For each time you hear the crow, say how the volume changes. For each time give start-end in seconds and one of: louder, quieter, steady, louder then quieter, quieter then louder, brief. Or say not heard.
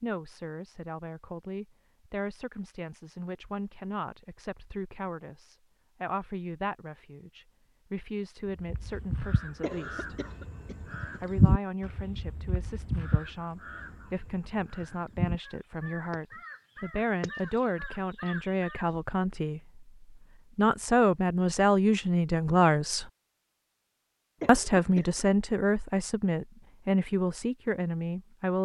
8.4-18.9 louder then quieter.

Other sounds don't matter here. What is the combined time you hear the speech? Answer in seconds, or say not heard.
26 s.